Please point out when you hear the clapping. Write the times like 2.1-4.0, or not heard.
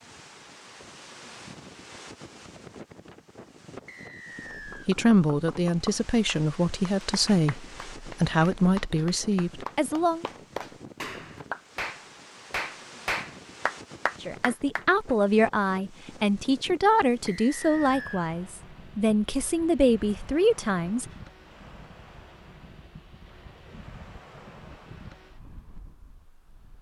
4.7-15.2.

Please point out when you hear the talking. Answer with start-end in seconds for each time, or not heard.
4.7-10.2, 14.2-21.1.